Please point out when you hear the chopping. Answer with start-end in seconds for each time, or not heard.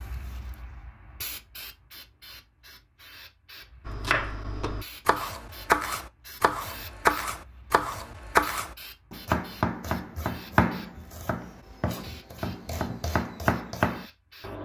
3.9-14.1.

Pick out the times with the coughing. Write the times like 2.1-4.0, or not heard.
not heard.